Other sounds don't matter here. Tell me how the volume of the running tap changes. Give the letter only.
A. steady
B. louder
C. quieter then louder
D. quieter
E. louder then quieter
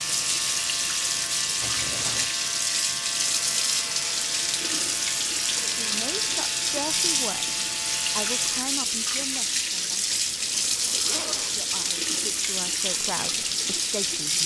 A.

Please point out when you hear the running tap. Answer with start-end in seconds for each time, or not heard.
0.0-14.4.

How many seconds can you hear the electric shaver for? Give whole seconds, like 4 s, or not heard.
9 s.